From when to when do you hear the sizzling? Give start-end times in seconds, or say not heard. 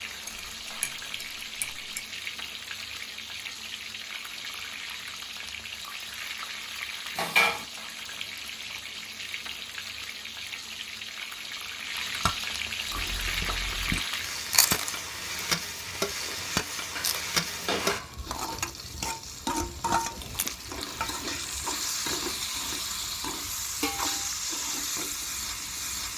0.0-26.1.